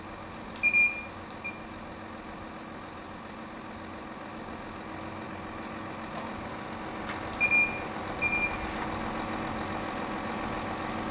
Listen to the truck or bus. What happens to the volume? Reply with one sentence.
The loudness of the truck or bus goes up.